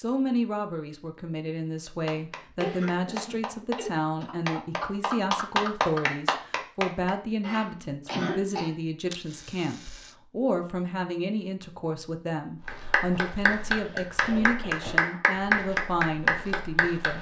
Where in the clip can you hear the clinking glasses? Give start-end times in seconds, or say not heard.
not heard.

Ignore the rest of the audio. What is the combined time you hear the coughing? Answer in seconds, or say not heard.
4 s.